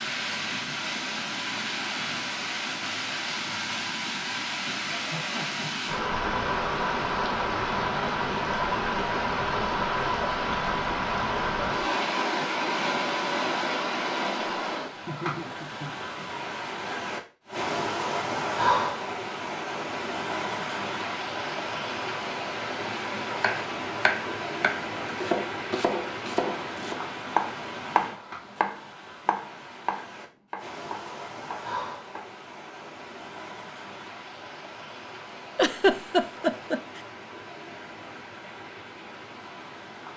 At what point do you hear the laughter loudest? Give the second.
36 s.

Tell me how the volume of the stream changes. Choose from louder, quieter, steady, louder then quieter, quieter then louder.
quieter.